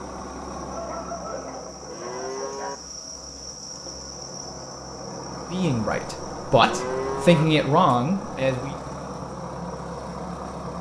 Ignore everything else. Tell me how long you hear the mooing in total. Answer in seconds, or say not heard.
2 s.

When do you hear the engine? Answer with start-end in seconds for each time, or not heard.
0.0-10.7.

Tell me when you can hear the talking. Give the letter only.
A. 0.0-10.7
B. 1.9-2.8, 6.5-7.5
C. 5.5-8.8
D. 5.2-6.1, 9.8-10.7
C.